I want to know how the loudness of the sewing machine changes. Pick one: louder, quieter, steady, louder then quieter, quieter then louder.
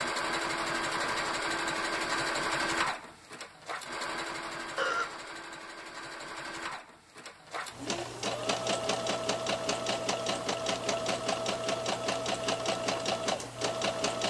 quieter then louder.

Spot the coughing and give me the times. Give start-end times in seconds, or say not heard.
4.8-5.2.